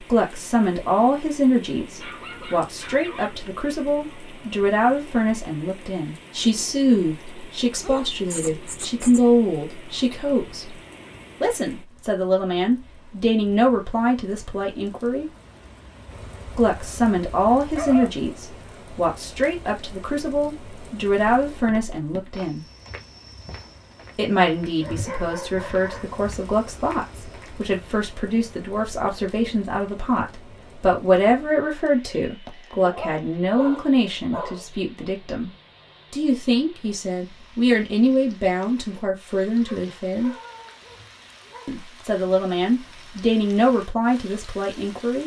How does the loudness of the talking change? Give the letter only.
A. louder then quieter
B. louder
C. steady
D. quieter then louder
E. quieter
C.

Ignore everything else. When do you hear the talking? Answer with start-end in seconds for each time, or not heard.
0.1-10.8, 11.4-15.3, 16.6-22.6, 24.1-35.5, 36.1-40.4, 41.6-45.2.